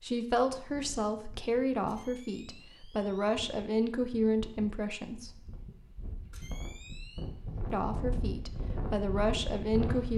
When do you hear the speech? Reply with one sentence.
You can hear the speech from 0.0 to 5.5 s and from 7.7 to 10.1 s.